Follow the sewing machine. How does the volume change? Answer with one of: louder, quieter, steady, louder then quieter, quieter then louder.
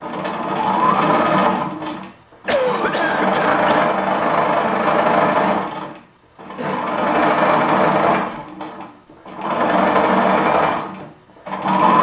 steady.